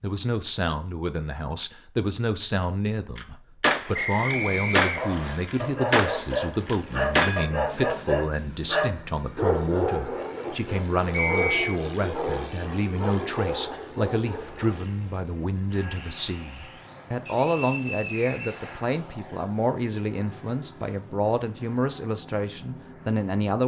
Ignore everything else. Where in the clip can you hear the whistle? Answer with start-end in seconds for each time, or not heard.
3.9-5.4, 11.1-11.8, 17.2-19.2.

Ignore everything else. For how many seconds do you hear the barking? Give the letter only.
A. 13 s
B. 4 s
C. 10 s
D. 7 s
C.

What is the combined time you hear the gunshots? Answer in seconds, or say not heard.
4 s.